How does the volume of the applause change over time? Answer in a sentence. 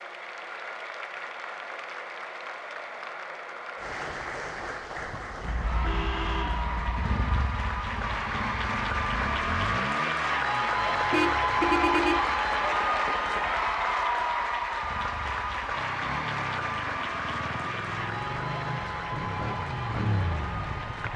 The volume of the applause goes up, then down.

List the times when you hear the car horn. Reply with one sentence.
The car horn can be heard from 5.4 to 7.5 s and from 11.1 to 12.2 s.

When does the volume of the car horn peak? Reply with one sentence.
The loudest moment of the car horn is at 12 seconds.